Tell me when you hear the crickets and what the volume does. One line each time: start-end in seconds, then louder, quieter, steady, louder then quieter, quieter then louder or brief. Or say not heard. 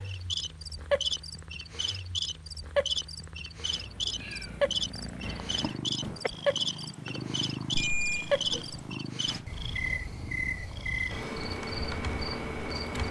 0.0-13.0 steady.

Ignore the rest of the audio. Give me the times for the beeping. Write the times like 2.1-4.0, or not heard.
7.7-8.9.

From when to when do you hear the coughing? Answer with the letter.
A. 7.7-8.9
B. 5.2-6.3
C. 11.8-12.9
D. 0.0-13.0
B.